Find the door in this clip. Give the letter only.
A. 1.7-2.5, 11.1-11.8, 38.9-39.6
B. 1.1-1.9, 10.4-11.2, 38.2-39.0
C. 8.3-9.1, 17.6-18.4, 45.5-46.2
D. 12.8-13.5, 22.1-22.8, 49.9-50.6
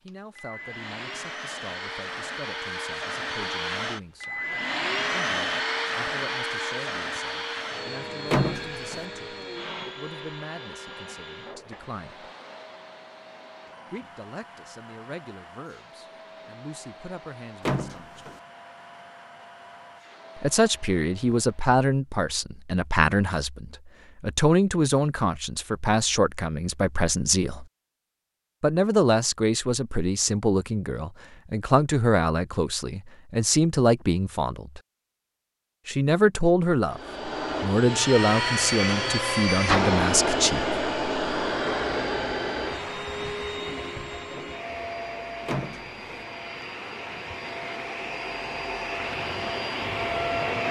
C.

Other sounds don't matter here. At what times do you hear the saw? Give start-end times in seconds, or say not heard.
not heard.